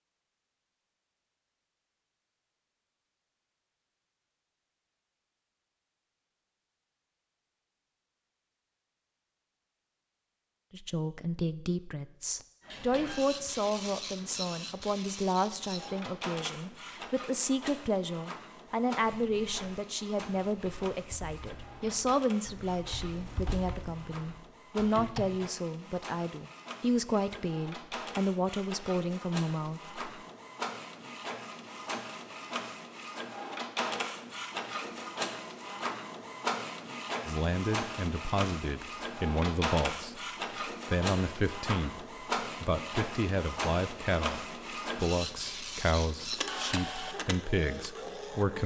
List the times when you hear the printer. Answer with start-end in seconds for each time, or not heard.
12.7-48.6.